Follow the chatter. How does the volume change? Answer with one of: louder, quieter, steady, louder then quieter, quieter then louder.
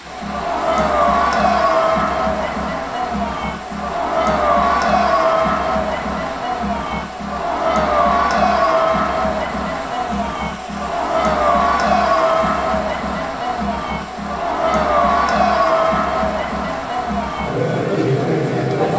steady.